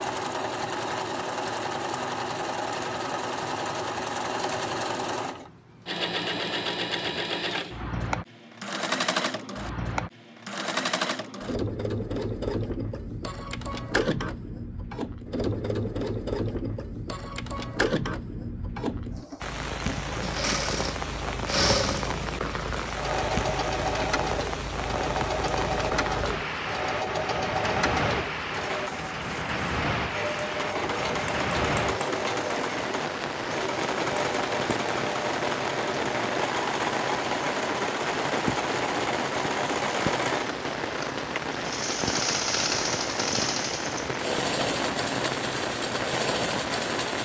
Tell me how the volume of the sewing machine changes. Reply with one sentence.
The loudness of the sewing machine stays about the same.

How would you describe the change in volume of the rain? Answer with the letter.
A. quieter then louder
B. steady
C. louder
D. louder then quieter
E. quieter
B.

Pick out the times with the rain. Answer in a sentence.
You can hear the rain from 19.4 to 47.2 s.